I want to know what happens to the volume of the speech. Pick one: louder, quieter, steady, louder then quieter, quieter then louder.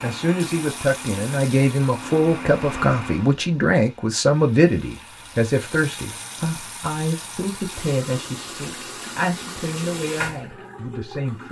quieter.